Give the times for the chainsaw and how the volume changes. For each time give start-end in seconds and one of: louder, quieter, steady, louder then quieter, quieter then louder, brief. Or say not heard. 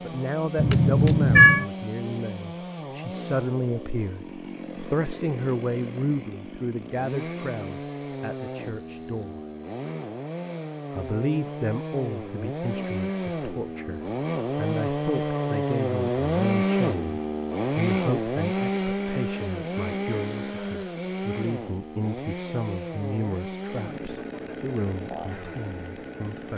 0.0-26.5 louder then quieter.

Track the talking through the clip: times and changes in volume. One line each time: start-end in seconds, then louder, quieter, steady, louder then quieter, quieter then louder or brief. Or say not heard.
0.0-9.4 quieter
10.9-26.5 steady.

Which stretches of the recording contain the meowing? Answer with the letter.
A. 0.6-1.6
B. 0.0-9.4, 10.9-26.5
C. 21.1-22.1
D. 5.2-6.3
A.